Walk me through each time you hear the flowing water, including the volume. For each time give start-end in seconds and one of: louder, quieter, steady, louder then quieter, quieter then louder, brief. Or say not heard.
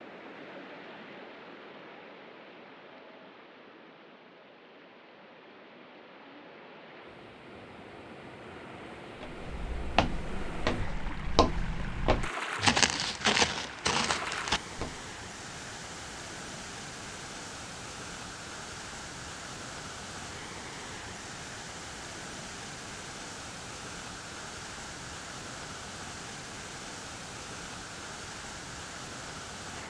0.0-29.8 louder.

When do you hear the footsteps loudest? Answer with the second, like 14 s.
13 s.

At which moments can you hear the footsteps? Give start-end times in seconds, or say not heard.
9.2-15.0.